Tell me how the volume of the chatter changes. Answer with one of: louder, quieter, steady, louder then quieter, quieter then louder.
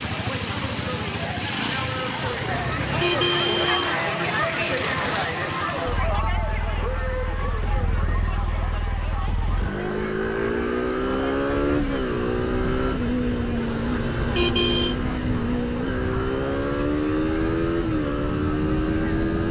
quieter.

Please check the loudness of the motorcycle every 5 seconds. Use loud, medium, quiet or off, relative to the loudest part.
medium, medium, loud, loud.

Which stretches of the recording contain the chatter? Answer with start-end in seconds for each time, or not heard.
0.0-19.4.